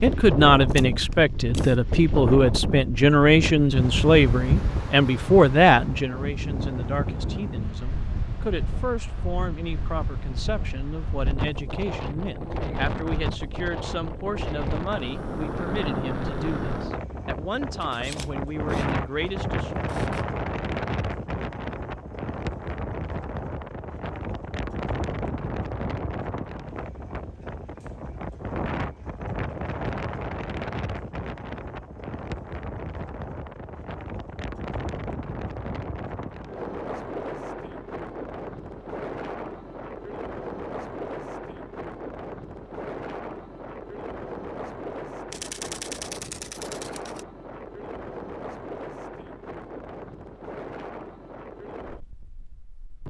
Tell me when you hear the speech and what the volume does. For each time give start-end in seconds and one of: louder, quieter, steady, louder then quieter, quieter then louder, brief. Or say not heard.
0.0-19.9 quieter.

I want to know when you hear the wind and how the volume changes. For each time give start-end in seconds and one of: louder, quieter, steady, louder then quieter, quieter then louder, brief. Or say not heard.
0.0-53.0 quieter.